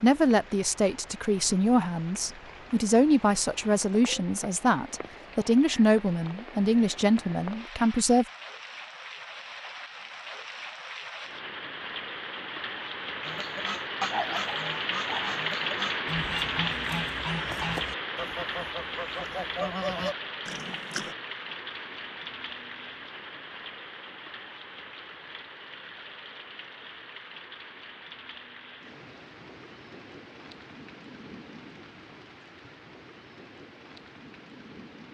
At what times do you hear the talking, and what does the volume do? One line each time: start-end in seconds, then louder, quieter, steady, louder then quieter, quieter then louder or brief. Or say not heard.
0.0-8.2 steady.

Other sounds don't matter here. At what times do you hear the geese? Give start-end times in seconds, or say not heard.
13.2-21.1.